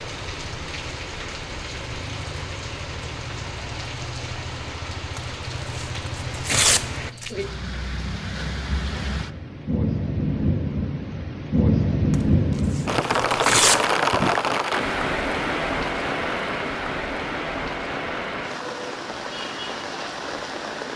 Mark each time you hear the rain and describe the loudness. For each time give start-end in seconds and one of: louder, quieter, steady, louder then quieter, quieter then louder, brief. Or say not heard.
0.0-20.9 louder then quieter.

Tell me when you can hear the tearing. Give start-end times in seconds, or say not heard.
5.2-7.5, 12.1-13.8.